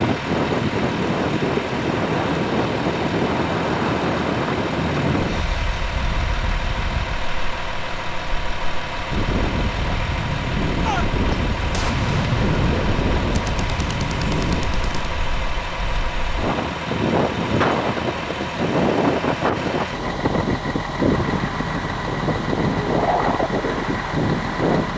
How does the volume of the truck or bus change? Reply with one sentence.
The volume of the truck or bus stays about the same.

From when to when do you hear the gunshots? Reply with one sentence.
You can hear the gunshots from 10.8 to 15.1 s.